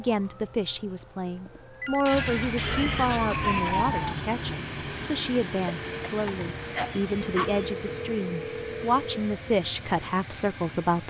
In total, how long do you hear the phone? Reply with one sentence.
You can hear the phone for 3 seconds altogether.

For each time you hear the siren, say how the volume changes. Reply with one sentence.
The siren can be heard from 0.0 to 4.2 s, getting louder.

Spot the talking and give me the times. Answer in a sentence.
You can hear the talking from 0.0 to 11.0 s.